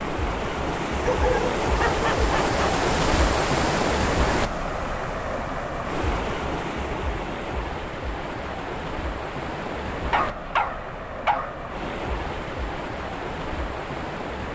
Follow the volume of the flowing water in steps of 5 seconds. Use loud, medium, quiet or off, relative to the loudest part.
loud, medium, medium.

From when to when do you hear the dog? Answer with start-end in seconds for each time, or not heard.
1.0-2.8, 9.9-11.6.